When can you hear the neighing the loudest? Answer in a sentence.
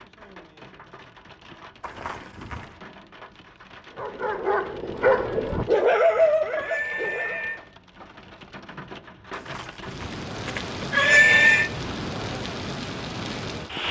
The loudest moment of the neighing is at 11 seconds.